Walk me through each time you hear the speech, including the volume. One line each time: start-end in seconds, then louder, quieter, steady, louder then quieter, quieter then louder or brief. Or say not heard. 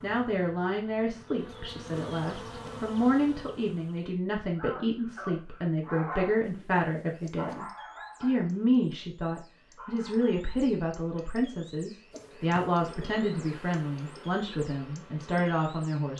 0.0-16.1 steady.